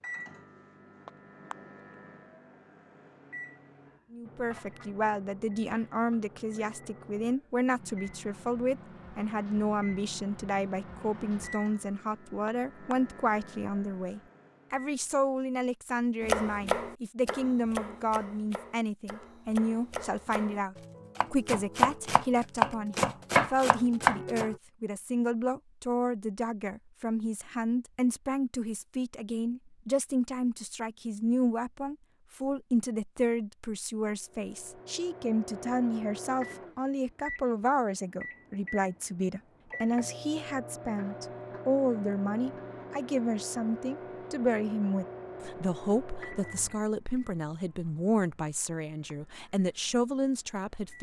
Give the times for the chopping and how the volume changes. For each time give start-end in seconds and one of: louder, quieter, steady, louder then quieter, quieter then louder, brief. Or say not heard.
16.2-24.6 quieter then louder.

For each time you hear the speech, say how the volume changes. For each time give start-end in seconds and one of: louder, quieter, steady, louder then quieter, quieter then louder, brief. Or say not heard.
4.1-50.9 steady.